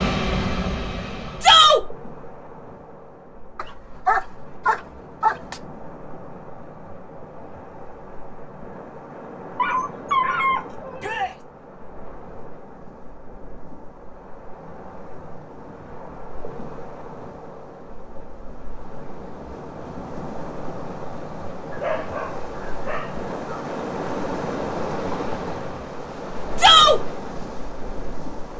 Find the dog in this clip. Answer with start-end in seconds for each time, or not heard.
3.5-5.6, 9.6-11.3, 21.7-23.6.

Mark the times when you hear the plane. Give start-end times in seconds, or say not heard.
0.0-1.6.